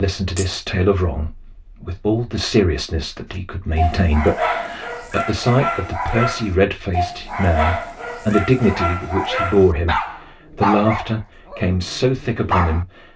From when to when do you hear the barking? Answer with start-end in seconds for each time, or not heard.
3.8-12.8.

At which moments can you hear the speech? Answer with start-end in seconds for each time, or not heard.
0.0-13.1.